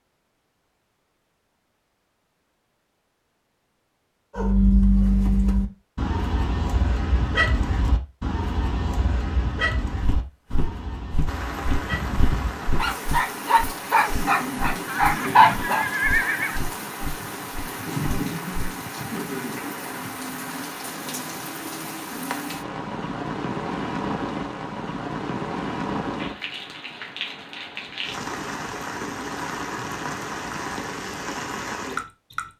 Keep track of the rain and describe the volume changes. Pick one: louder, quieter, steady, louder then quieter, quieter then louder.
steady.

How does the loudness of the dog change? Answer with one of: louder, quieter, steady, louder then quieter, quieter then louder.
quieter then louder.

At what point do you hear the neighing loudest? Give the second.
16 s.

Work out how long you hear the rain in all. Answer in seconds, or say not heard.
21 s.